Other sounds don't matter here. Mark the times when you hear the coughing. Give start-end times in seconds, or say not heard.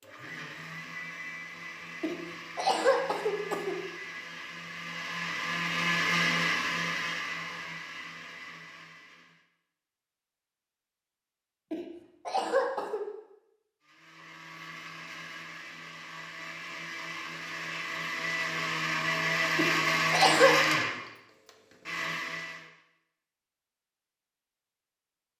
2.0-3.8, 11.7-13.1, 19.6-20.6.